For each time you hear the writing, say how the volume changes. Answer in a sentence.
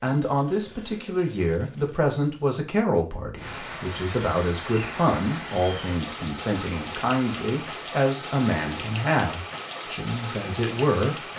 The writing can't be heard in this clip.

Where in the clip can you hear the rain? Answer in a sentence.
You can hear the rain from 3.4 to 11.3 s.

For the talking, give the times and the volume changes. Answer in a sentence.
You can hear the talking from 0.0 to 11.3 s, at a steady volume.